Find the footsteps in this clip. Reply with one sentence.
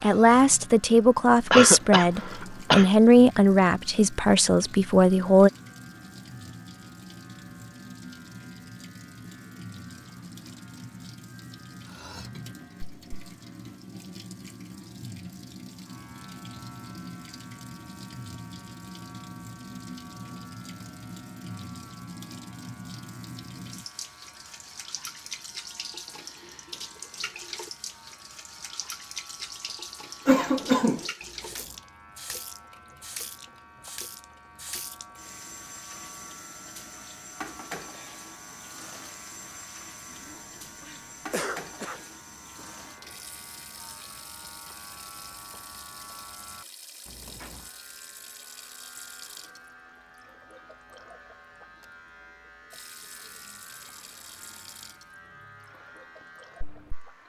You can't hear the footsteps here.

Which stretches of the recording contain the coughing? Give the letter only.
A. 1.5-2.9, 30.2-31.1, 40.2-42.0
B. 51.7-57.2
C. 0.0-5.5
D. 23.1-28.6
A.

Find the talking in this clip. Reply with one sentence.
You can hear the talking from 0.0 to 5.5 s.